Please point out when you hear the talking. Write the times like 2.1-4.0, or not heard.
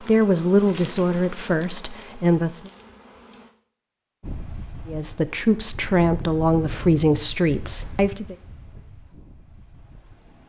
0.1-2.7, 4.8-8.3.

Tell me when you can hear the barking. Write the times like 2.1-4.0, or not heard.
not heard.